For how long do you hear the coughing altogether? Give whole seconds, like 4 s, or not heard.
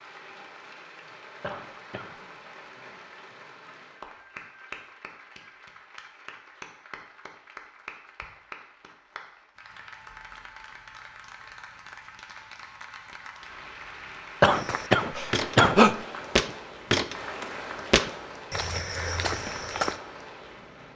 2 s.